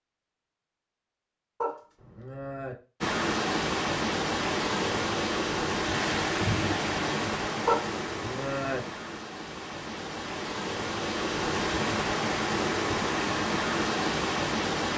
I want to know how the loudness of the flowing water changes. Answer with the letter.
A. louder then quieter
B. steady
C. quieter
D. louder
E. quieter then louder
E.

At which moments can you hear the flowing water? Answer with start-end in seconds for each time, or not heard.
3.0-14.9.